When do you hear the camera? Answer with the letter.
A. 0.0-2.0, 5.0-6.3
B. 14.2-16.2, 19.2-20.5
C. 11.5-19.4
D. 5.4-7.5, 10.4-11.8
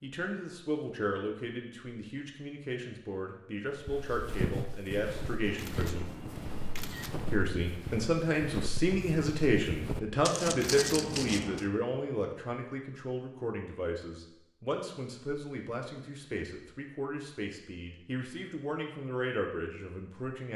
D.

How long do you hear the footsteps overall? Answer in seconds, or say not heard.
8 s.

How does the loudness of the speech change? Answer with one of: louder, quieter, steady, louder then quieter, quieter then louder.
louder then quieter.